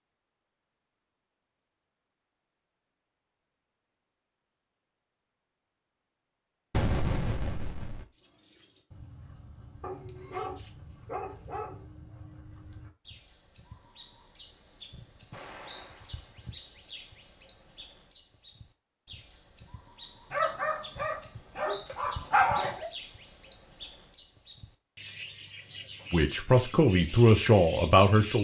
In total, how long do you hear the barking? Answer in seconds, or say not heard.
5 s.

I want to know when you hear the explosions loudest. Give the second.
7 s.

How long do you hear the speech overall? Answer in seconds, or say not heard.
2 s.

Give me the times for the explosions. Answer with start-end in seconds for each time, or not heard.
6.7-8.1, 15.3-16.4.